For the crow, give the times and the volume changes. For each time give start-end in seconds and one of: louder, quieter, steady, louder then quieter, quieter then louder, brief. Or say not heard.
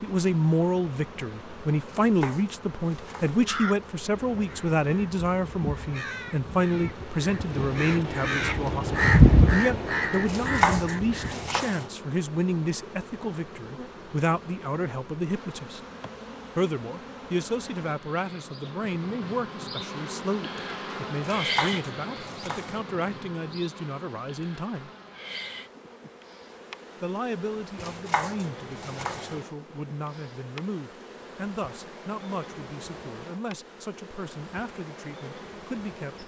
3.4-11.5 louder then quieter.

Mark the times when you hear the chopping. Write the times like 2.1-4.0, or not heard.
2.0-3.5, 10.2-11.8, 21.2-22.8, 27.8-29.4.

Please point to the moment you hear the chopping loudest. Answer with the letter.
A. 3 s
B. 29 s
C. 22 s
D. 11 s
D.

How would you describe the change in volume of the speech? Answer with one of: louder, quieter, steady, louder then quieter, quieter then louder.
quieter.